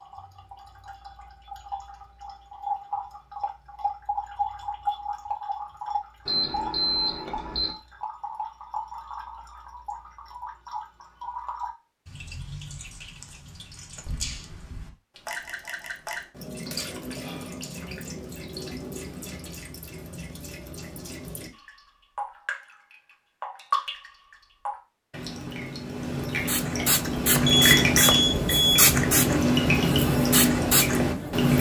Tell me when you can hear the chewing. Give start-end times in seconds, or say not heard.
not heard.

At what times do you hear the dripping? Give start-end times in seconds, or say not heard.
0.0-31.5.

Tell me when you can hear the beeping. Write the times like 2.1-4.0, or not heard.
6.2-7.7, 27.4-28.9.